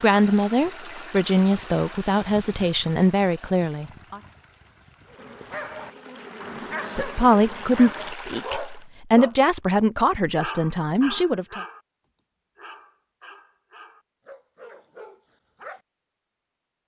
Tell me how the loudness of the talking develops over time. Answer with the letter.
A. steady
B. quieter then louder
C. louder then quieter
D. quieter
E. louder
A.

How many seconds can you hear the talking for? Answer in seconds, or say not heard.
9 s.